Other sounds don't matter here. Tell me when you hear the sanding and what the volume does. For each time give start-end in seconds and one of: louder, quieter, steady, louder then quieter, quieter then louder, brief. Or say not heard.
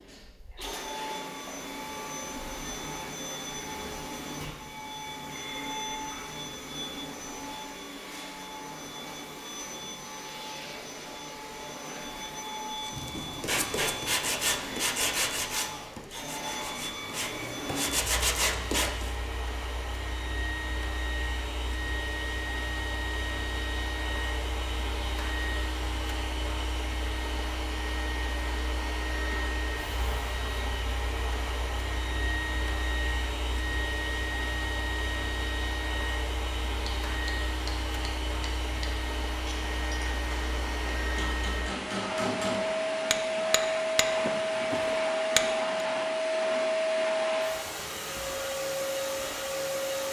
12.8-19.1 quieter then louder.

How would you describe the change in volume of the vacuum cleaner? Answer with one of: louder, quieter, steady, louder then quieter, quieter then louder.
louder.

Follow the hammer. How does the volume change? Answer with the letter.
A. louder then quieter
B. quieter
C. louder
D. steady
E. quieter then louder
C.